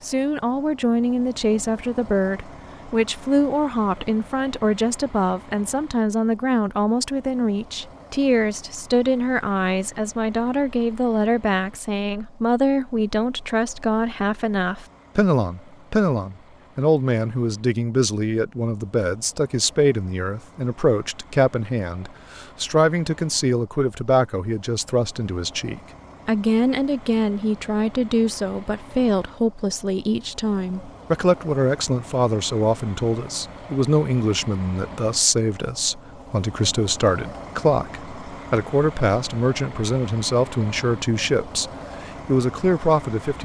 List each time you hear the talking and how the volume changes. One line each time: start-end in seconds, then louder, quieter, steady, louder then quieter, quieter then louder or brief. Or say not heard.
0.0-43.4 steady.